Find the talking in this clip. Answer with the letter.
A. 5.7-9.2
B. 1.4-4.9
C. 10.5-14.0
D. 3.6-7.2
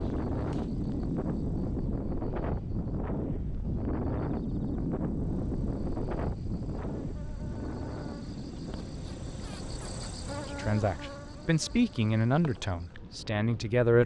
C.